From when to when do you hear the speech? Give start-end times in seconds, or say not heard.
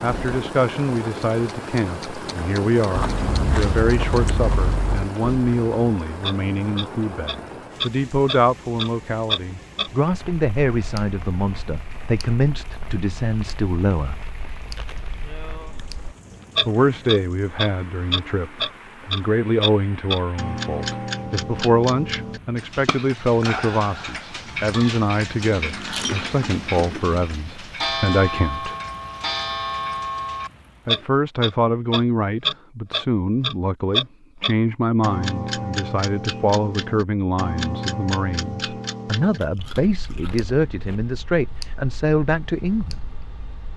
0.0-14.2, 16.6-28.8, 30.9-43.0.